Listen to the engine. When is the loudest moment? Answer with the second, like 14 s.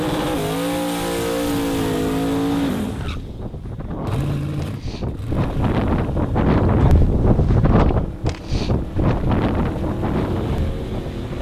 2 s.